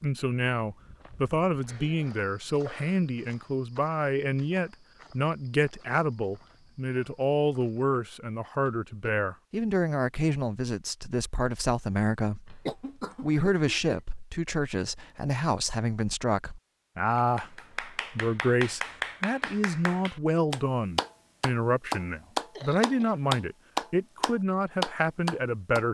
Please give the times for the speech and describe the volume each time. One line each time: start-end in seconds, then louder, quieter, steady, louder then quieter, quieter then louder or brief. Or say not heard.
0.0-12.6 steady
13.2-25.8 steady.